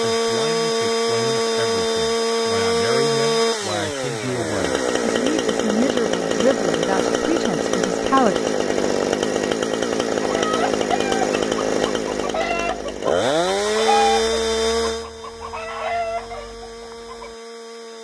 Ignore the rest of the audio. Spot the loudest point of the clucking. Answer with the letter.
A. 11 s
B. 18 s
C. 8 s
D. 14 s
D.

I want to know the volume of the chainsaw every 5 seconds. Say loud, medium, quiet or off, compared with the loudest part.
loud, loud, loud, quiet.